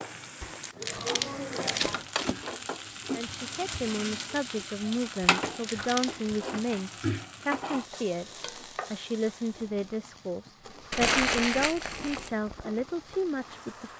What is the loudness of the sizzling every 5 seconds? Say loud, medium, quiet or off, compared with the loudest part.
loud, loud, medium.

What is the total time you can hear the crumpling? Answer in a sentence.
The crumpling can be heard for 4 seconds in total.